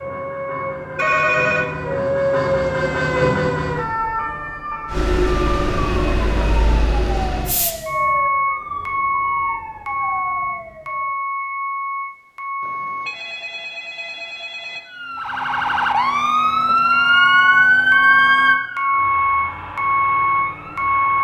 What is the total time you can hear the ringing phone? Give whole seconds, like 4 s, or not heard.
3 s.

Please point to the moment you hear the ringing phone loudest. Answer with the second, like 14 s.
1 s.